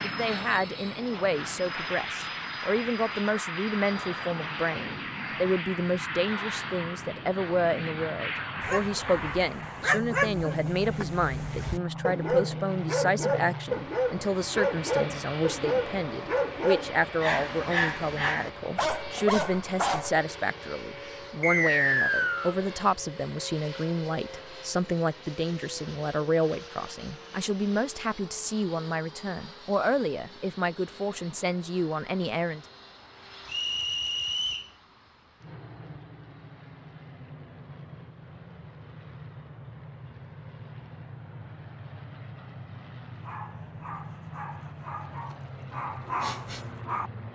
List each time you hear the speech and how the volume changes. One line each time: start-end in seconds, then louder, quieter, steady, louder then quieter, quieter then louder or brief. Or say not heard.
0.0-32.6 steady.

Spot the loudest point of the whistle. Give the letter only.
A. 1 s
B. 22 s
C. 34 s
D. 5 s
B.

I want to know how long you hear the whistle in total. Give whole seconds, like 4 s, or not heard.
3 s.